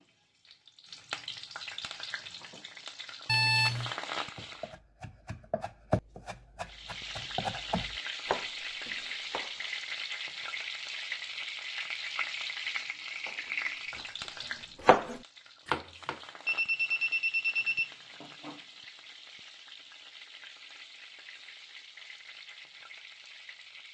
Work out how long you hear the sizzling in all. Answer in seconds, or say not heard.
22 s.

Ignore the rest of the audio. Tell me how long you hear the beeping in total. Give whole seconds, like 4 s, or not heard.
2 s.